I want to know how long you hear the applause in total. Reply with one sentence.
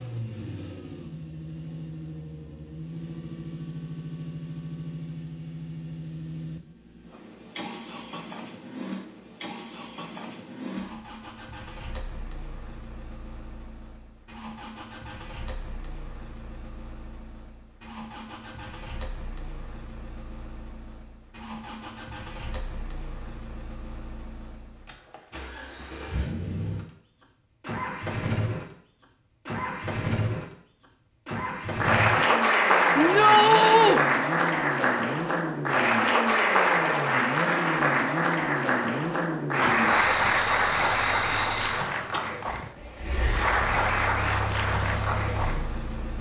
You can hear the applause for 14 seconds altogether.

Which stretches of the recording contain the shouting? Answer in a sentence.
You can hear the shouting from 33.0 to 34.0 s.